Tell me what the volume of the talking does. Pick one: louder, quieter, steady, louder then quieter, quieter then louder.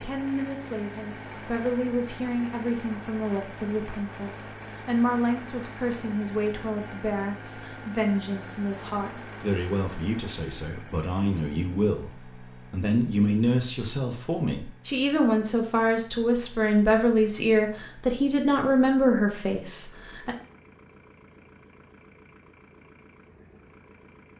louder.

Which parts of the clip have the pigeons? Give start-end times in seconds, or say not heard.
not heard.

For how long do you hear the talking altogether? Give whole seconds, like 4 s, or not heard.
20 s.